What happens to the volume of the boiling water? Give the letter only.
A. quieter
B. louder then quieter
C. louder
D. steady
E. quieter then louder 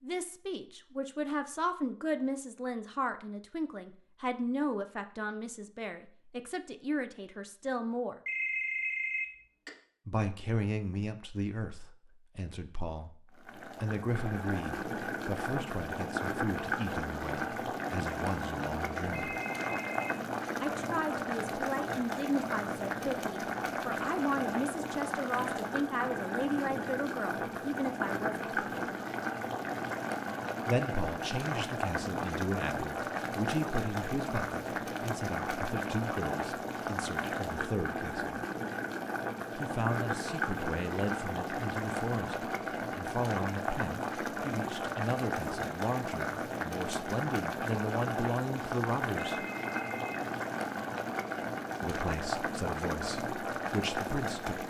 D.